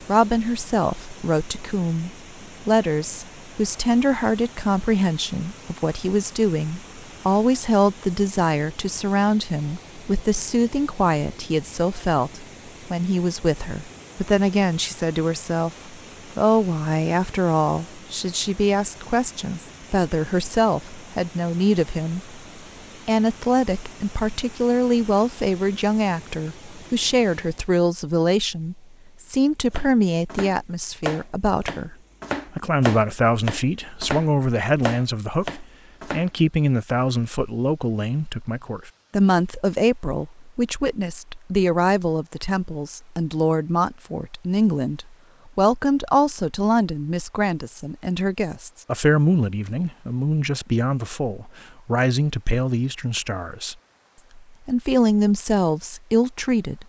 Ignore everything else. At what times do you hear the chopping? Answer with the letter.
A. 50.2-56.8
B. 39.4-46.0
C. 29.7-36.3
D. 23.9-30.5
C.